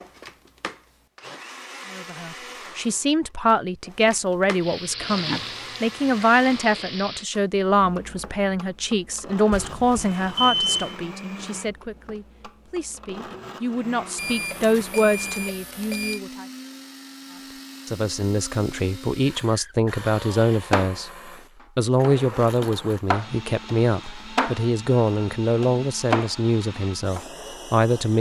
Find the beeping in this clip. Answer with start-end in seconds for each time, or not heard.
9.5-10.9, 14.2-16.2.